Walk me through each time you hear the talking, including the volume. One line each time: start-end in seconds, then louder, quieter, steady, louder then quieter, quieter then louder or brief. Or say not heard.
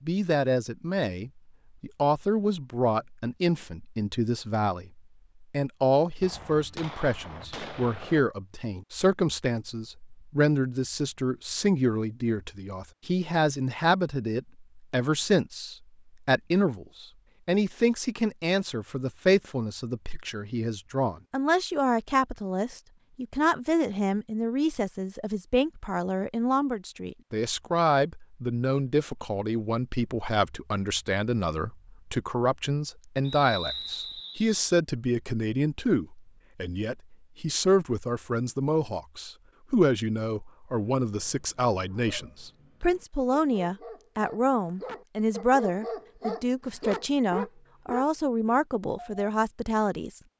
0.0-50.2 steady.